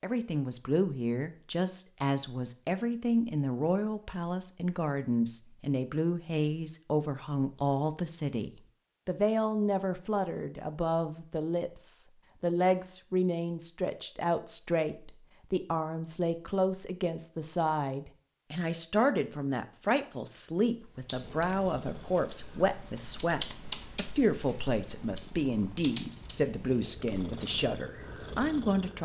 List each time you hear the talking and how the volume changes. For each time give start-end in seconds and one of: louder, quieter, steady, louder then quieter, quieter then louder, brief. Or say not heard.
0.0-29.0 steady.